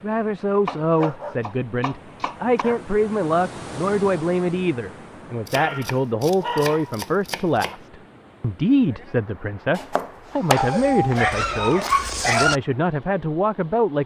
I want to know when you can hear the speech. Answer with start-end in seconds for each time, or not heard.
0.0-14.0.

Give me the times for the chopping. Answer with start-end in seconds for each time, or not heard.
0.7-2.6, 5.5-7.8, 9.8-11.3.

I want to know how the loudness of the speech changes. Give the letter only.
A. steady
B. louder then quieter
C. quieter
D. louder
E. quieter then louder
A.